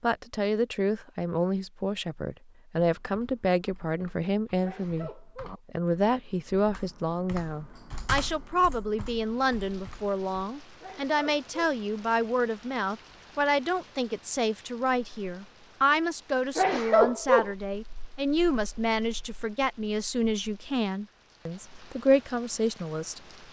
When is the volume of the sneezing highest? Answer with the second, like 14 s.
17 s.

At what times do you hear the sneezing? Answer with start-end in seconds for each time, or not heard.
4.6-5.6, 10.8-11.8, 16.6-17.5.